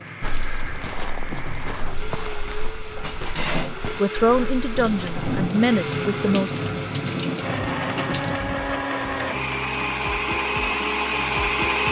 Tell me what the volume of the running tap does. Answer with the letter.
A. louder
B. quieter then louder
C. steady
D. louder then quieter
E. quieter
A.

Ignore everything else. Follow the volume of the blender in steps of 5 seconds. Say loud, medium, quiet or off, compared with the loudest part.
quiet, medium, loud.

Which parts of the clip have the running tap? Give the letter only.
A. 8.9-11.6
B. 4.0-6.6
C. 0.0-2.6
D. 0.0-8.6
D.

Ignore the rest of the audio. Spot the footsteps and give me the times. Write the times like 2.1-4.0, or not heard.
0.2-5.2.